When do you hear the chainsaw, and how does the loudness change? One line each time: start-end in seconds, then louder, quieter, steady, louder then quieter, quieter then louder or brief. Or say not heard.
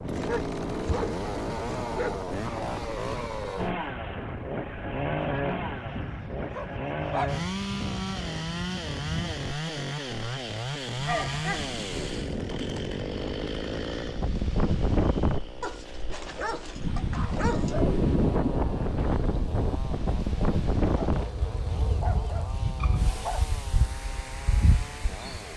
0.0-25.5 quieter.